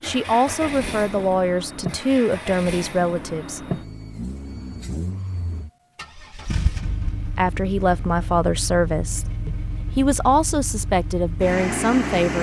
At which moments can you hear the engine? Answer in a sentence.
You can hear the engine from 0.0 to 12.3 s.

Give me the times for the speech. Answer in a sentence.
You can hear the speech from 0.0 to 3.6 s and from 7.3 to 12.3 s.